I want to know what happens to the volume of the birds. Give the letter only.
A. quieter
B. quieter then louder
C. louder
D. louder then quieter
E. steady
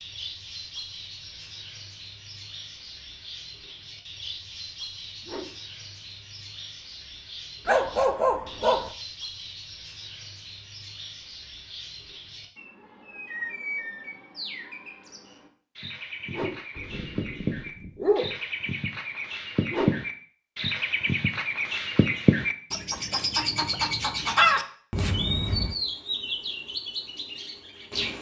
C.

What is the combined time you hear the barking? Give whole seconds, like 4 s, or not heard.
3 s.